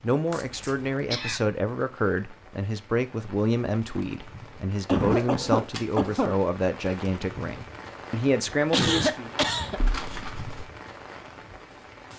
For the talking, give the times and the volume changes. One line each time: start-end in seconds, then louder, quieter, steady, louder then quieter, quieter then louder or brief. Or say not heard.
0.0-9.3 steady.